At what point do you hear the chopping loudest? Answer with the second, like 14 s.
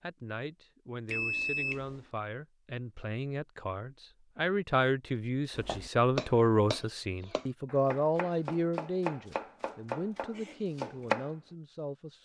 11 s.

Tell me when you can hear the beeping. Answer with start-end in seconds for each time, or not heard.
1.1-2.0.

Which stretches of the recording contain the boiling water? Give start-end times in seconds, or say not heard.
not heard.